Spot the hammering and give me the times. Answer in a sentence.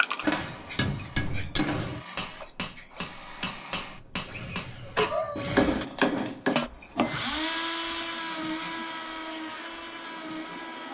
You can hear the hammering from 0.2 to 6.5 s.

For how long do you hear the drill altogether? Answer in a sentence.
The drill can be heard for 11 seconds in total.